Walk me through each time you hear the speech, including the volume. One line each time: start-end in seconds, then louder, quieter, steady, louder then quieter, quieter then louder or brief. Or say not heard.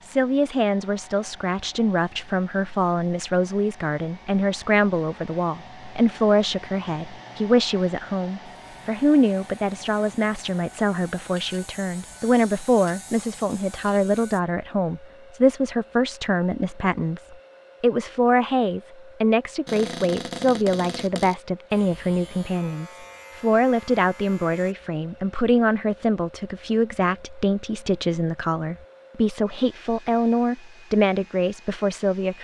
0.0-32.3 steady.